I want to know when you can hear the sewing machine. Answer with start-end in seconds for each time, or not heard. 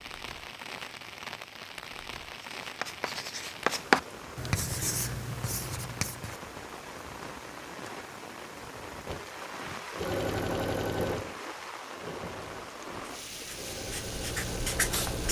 9.1-15.0.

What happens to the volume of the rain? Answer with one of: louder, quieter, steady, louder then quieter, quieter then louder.
steady.